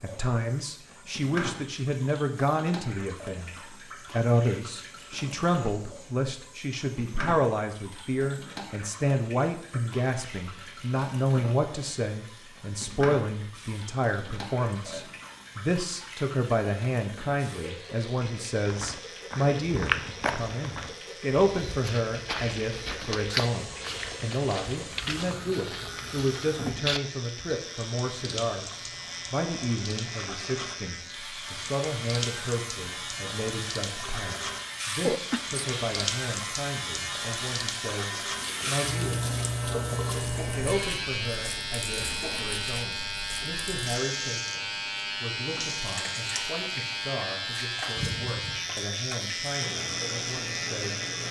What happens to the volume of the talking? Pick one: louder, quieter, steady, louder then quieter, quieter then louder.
quieter.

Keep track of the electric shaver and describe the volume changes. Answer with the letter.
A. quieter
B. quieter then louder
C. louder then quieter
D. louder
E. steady
D.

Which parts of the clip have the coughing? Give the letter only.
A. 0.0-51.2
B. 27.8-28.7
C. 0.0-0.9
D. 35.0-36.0
D.